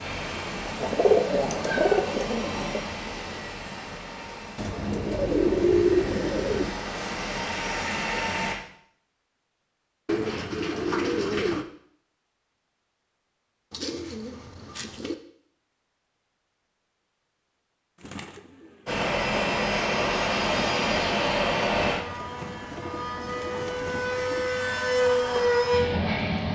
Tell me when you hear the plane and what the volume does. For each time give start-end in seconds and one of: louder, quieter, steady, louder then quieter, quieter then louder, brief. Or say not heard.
0.0-8.6 quieter then louder
18.9-26.5 quieter then louder.